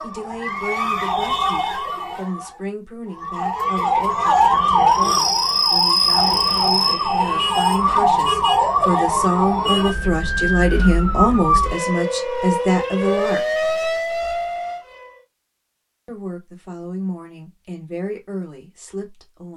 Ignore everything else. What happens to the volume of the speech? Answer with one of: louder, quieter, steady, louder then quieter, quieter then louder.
louder then quieter.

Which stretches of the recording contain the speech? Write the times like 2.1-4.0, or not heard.
0.0-13.6, 16.1-19.5.